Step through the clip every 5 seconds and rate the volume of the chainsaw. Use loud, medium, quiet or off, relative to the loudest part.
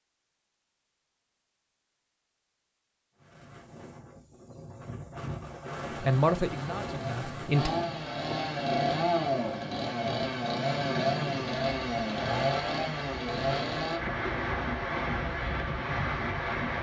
off, loud, loud, off.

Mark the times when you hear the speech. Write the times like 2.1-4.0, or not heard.
6.0-7.7.